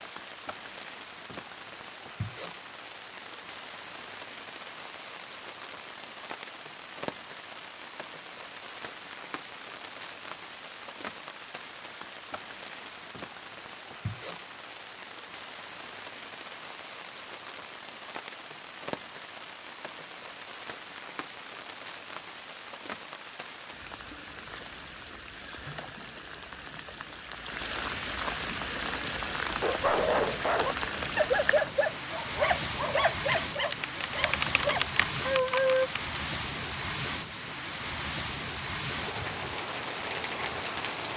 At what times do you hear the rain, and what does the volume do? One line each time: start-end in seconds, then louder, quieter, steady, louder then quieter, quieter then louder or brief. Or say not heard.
0.0-41.1 louder.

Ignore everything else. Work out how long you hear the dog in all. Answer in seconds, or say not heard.
6 s.